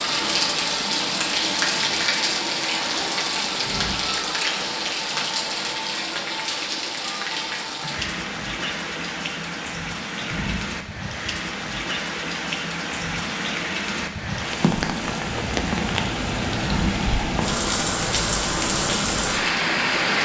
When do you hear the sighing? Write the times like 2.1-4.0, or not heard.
3.5-4.2, 10.2-10.8, 16.5-17.1.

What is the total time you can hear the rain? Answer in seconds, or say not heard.
20 s.